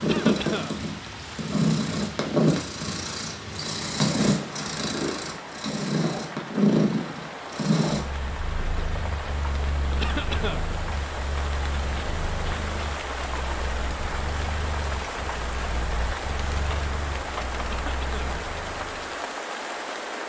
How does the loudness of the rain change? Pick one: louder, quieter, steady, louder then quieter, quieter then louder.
louder.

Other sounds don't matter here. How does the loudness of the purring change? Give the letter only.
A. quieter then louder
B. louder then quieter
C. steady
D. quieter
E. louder
D.